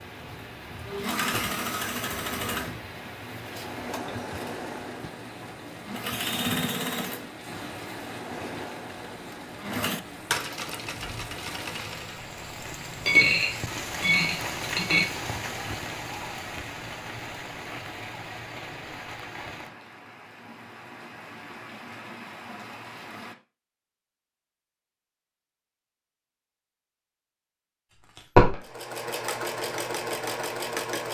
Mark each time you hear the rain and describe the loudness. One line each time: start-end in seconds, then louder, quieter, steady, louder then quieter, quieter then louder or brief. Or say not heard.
0.0-23.4 louder then quieter.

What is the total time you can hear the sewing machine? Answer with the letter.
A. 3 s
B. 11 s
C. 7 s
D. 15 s
D.